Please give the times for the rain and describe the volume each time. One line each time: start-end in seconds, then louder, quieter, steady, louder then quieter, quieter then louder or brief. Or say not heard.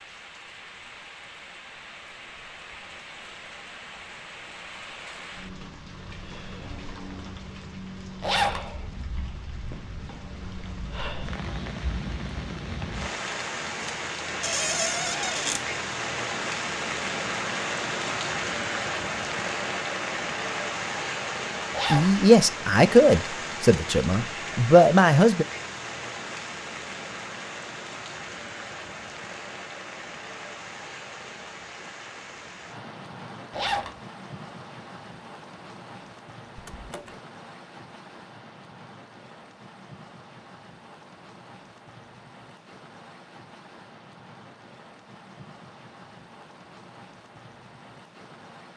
0.0-48.7 louder then quieter.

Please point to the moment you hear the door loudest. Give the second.
15 s.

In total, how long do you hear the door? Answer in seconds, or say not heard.
2 s.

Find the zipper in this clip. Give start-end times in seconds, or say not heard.
8.2-8.6, 21.7-22.1, 33.5-34.0.